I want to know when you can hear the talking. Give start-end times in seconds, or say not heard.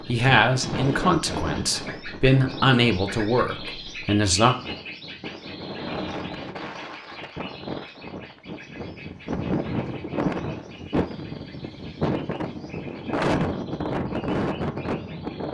0.1-4.5.